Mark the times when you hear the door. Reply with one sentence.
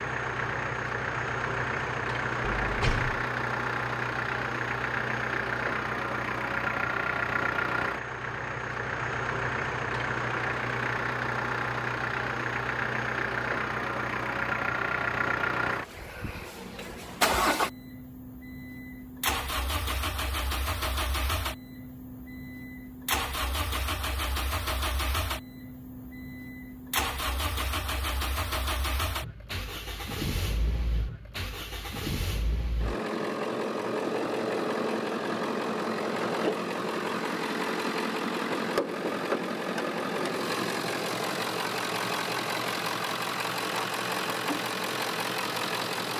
The door can be heard from 2.4 to 3.2 s.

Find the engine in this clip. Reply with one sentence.
The engine can be heard from 0.0 to 46.1 s.